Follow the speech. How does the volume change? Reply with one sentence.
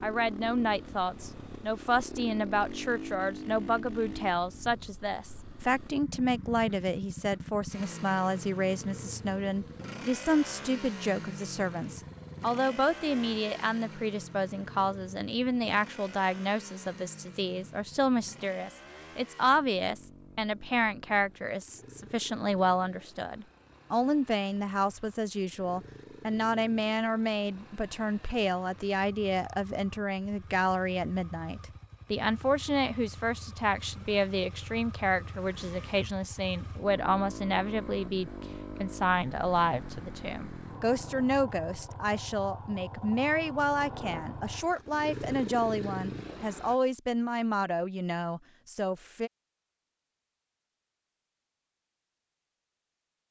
The volume of the speech stays about the same.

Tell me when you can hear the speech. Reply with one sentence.
The speech can be heard from 0.0 to 49.3 s.